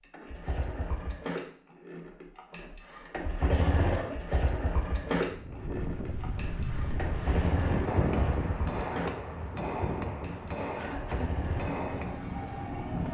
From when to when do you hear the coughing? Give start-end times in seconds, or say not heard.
3.5-4.3, 10.8-11.3.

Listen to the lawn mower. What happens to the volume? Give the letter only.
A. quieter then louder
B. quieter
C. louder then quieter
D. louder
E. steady
C.